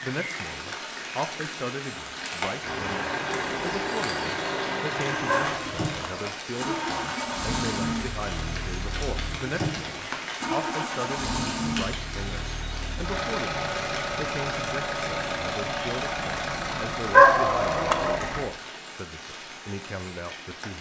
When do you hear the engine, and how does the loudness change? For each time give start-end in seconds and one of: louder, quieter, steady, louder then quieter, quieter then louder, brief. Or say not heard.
2.6-18.5 steady.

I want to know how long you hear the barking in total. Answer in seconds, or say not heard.
2 s.